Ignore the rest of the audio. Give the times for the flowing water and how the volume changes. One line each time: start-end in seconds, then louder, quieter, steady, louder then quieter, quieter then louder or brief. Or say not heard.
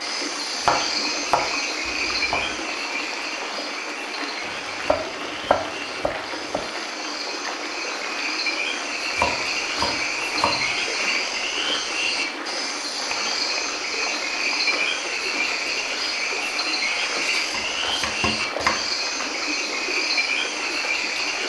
0.0-21.4 steady.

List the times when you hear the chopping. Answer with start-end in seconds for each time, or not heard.
0.6-2.5, 4.5-6.6, 9.2-10.8, 12.9-14.7, 17.2-18.9.